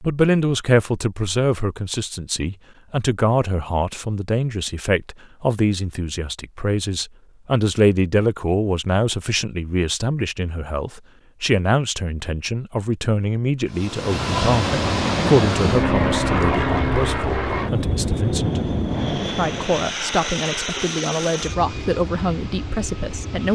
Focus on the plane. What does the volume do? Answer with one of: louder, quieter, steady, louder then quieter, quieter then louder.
quieter.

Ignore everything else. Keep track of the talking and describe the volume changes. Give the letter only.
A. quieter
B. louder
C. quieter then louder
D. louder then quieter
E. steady
E.